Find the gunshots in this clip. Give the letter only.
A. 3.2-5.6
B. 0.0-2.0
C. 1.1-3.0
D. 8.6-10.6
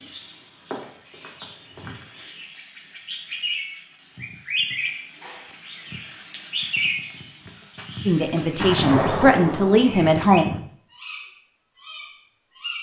D.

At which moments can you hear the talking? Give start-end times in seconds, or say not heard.
8.1-10.4.